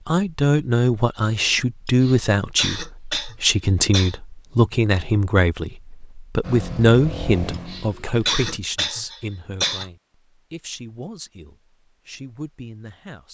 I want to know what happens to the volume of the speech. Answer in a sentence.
The loudness of the speech goes down.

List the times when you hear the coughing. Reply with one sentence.
You can hear the coughing from 1.9 to 4.2 s and from 7.5 to 9.8 s.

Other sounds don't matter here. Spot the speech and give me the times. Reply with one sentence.
You can hear the speech from 0.1 to 13.2 s.